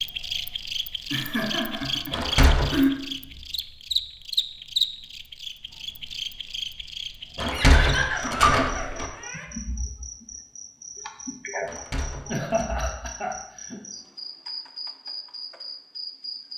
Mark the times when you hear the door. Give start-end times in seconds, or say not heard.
2.1-2.8, 7.3-9.1, 11.7-12.7.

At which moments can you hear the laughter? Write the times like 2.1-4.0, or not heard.
1.1-2.9, 7.5-9.4, 12.2-13.8.